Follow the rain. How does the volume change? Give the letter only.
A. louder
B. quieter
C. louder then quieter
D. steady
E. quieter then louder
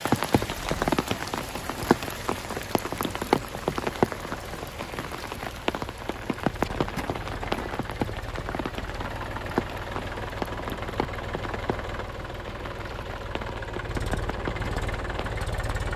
B.